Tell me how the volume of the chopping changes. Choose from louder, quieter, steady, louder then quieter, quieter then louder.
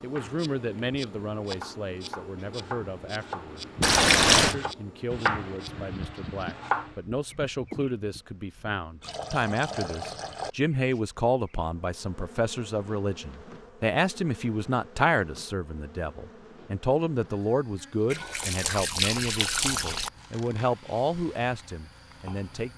louder then quieter.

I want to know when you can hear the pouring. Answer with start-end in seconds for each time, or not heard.
3.8-4.5, 9.0-10.5, 18.1-20.1.